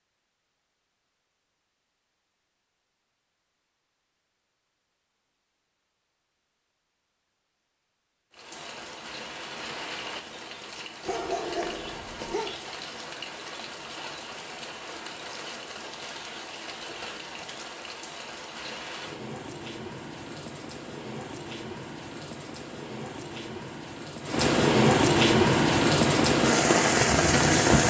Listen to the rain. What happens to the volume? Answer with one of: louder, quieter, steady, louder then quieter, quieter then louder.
louder.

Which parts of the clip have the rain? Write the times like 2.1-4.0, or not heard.
8.3-27.8.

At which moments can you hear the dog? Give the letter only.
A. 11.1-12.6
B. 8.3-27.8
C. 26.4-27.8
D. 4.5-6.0
A.